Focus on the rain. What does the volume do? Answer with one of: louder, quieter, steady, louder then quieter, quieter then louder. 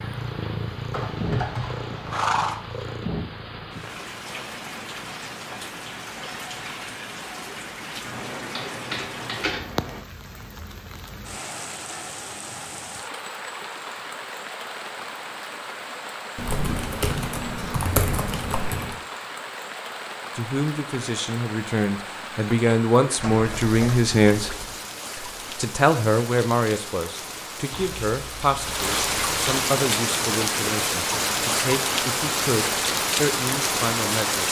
louder.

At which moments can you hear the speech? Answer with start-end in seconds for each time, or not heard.
20.4-24.5, 25.1-34.4.